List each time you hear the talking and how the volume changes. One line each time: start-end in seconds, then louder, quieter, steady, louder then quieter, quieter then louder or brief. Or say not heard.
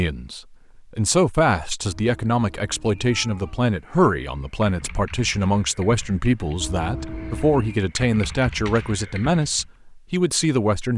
0.0-10.9 steady.